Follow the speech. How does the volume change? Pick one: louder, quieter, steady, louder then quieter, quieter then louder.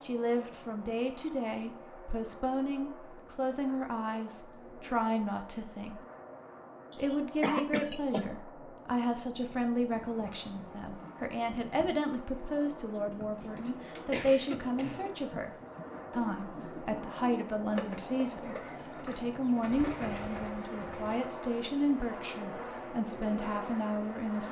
steady.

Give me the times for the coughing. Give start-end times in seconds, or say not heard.
6.9-8.3, 13.6-15.1.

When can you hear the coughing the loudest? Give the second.
8 s.